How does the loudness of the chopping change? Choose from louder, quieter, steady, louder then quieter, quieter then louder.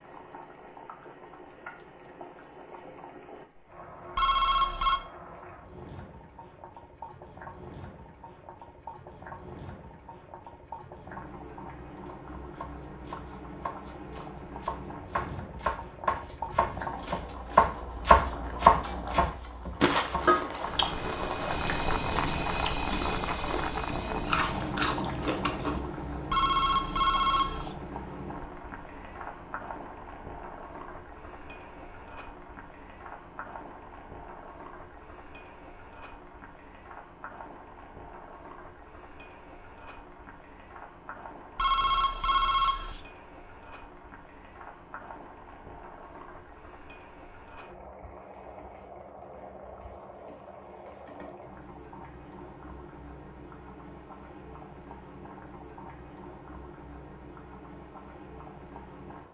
louder.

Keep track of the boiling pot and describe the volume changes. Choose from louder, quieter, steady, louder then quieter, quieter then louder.
louder then quieter.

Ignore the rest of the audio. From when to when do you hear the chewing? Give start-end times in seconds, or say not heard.
19.8-25.8.